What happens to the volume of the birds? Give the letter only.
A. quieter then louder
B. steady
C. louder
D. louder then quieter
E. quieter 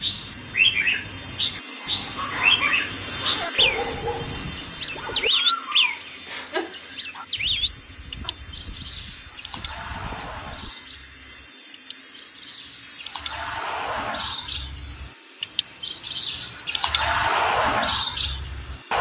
A.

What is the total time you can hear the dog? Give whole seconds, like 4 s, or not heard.
9 s.